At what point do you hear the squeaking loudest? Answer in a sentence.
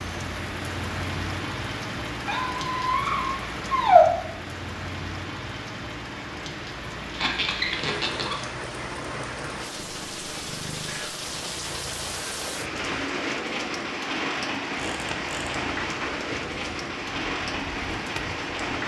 The loudest moment of the squeaking is at 4 seconds.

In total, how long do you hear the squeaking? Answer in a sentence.
You can hear the squeaking for 4 seconds altogether.